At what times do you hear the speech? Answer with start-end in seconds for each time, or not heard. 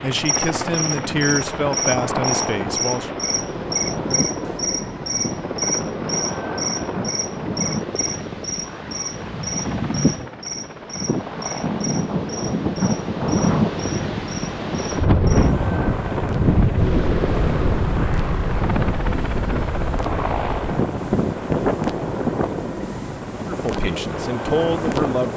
0.0-3.1, 23.4-25.3.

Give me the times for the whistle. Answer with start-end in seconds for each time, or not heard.
not heard.